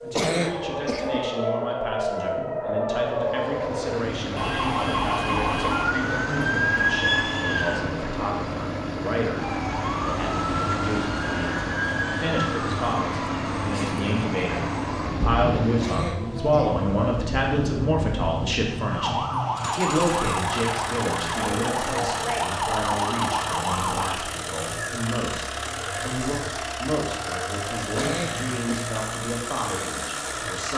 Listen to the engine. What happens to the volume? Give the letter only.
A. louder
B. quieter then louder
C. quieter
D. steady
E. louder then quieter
D.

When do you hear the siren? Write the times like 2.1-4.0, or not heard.
0.0-7.8, 9.3-24.2.